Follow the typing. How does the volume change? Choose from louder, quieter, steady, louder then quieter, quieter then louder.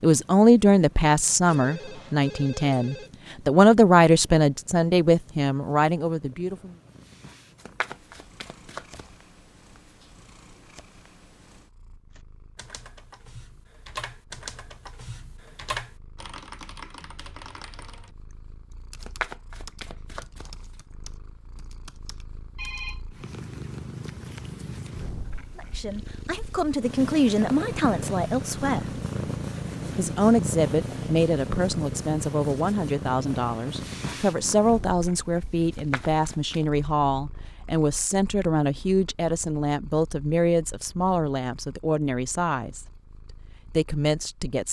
quieter.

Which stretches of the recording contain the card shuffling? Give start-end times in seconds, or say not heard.
7.6-9.1, 19.0-20.6, 35.7-36.6.